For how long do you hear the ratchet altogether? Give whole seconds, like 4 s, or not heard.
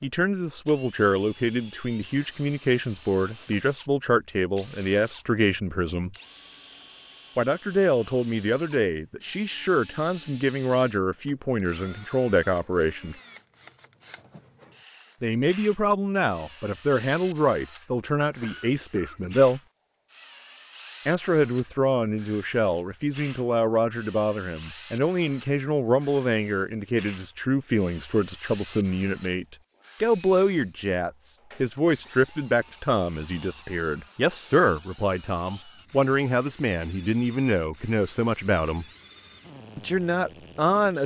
not heard.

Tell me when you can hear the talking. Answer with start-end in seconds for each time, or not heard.
0.0-6.2, 7.3-13.2, 15.2-19.6, 21.1-38.9, 39.8-41.0.